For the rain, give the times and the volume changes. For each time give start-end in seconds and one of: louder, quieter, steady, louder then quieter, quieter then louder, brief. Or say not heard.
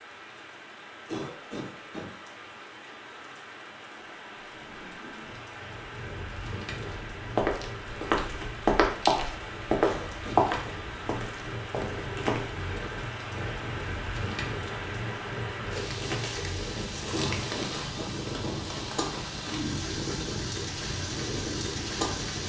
0.0-22.4 louder.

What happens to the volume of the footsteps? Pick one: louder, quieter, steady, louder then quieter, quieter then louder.
louder then quieter.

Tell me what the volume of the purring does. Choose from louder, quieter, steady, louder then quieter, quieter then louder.
louder.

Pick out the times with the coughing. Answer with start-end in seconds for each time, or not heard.
1.1-2.1, 9.8-10.8, 17.1-18.6.